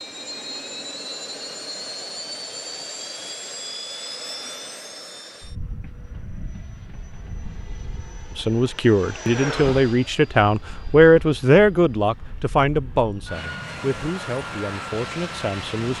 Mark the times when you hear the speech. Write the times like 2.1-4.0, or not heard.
8.3-15.9.